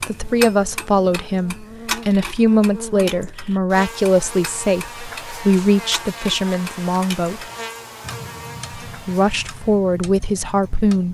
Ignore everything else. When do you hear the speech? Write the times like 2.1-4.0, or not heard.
0.0-7.5, 8.9-11.0.